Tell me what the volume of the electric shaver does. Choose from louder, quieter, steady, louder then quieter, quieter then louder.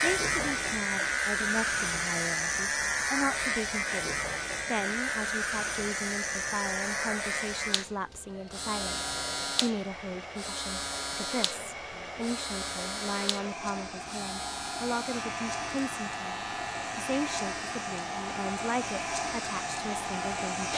quieter.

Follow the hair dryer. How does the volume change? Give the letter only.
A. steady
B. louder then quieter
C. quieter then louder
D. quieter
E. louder
E.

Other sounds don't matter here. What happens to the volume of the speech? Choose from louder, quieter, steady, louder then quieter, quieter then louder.
steady.